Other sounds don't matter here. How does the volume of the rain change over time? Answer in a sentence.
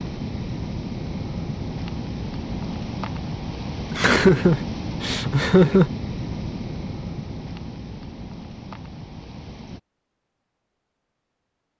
The loudness of the rain goes down.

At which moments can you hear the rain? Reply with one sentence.
You can hear the rain from 0.0 to 9.8 s.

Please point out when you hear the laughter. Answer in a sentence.
You can hear the laughter from 3.9 to 5.9 s.